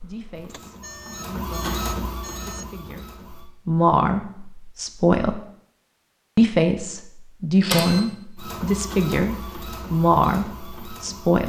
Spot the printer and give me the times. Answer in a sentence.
You can hear the printer from 0.0 to 3.5 s and from 7.6 to 11.4 s.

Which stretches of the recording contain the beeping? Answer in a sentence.
The beeping can be heard from 0.5 to 2.6 s.